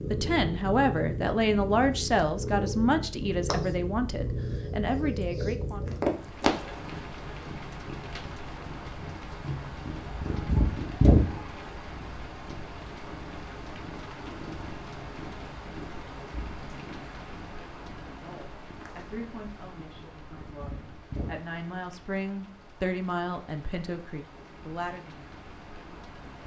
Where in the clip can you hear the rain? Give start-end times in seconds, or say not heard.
6.0-26.4.